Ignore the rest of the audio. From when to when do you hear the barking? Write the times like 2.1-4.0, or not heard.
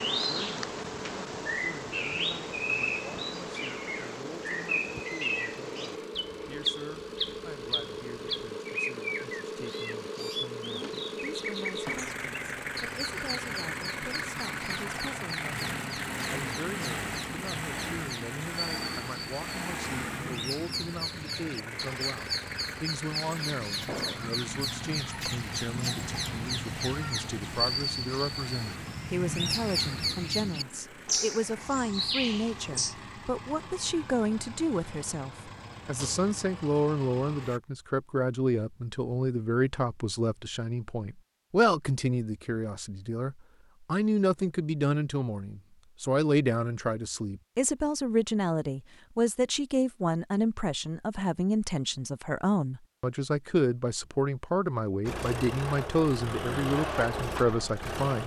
not heard.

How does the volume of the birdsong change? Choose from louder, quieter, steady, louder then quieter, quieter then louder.
quieter then louder.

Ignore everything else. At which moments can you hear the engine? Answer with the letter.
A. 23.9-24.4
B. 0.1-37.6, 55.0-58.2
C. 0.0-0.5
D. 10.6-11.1
B.